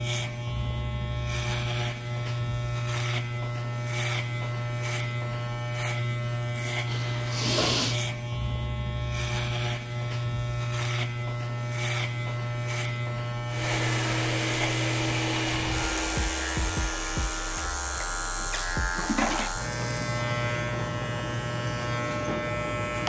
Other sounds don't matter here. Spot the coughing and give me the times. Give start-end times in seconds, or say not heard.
not heard.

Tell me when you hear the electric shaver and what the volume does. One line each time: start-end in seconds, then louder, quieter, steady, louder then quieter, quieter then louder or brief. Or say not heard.
0.0-23.0 steady.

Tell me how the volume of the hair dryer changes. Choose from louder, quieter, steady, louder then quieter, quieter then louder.
quieter.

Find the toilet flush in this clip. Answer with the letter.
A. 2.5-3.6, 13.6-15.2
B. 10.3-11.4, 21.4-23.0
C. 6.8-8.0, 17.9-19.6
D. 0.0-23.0
C.